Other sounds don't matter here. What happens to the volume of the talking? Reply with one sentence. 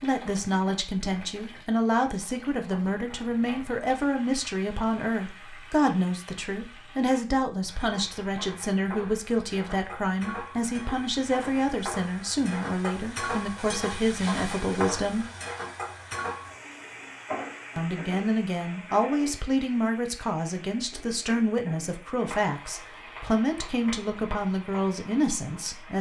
The loudness of the talking stays about the same.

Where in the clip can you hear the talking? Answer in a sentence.
You can hear the talking from 0.0 to 15.2 s and from 17.8 to 25.9 s.